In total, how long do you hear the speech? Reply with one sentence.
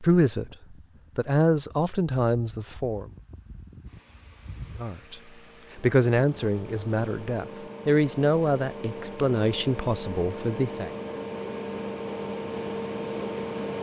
You can hear the speech for 9 seconds altogether.